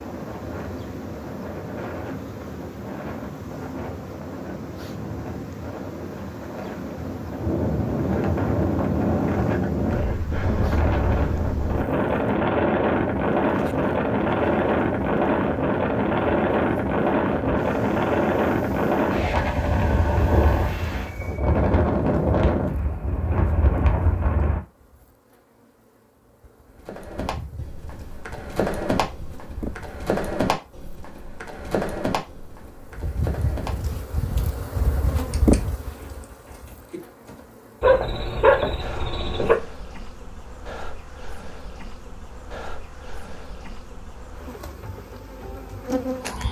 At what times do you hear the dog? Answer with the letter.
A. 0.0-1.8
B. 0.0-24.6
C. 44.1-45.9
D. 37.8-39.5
D.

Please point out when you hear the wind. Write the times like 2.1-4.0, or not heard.
0.0-24.6.